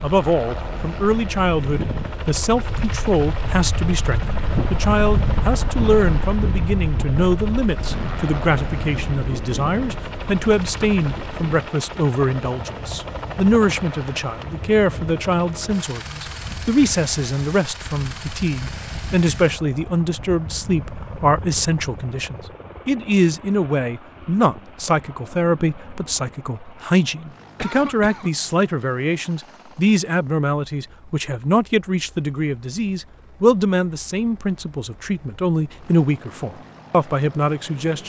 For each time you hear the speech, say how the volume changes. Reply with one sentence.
The speech can be heard from 0.0 to 38.0 s, at a steady volume.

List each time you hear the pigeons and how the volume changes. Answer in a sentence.
You can't hear the pigeons here.